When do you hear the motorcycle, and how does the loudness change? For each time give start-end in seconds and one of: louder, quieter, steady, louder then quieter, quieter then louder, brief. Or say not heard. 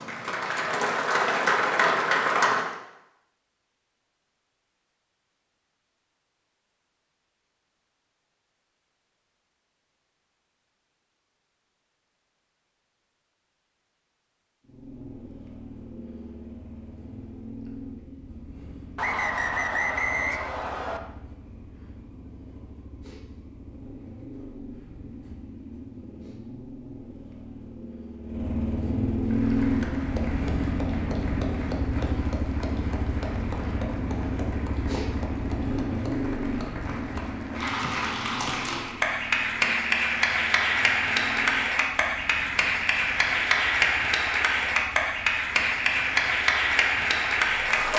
14.6-47.9 louder then quieter.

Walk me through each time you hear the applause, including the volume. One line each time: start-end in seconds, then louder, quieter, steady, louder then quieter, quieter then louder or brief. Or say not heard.
0.0-2.7 brief
29.2-47.9 louder.